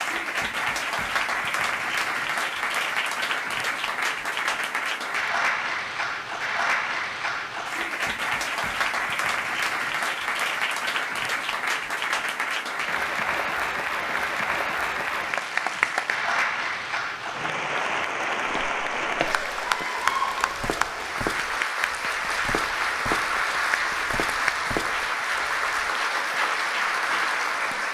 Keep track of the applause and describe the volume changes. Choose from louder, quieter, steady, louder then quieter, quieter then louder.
steady.